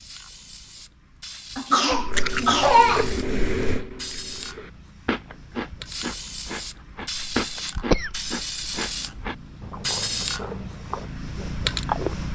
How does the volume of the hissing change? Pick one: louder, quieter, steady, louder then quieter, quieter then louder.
louder.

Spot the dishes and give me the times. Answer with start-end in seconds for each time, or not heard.
not heard.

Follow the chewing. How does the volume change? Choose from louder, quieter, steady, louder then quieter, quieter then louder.
quieter.